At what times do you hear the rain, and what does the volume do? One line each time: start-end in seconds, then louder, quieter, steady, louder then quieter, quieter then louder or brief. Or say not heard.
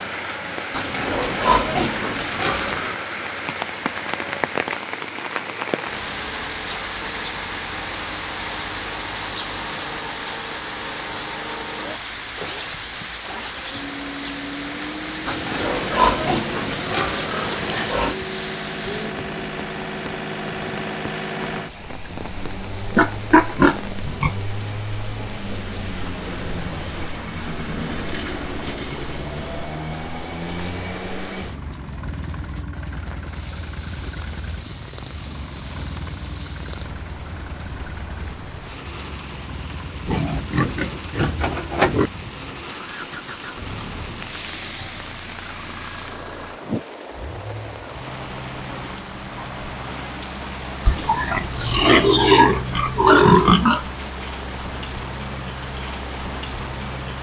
0.0-57.1 quieter then louder.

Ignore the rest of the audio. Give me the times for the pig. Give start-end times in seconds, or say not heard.
0.7-3.0, 15.2-18.1, 22.9-24.3, 40.0-42.1, 50.9-53.9.